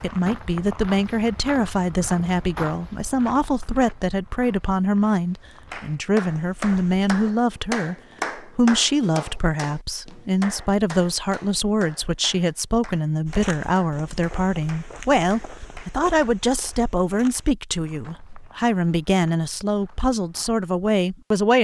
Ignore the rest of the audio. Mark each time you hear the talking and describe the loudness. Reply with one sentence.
The talking can be heard from 0.0 to 21.5 s, at a steady volume.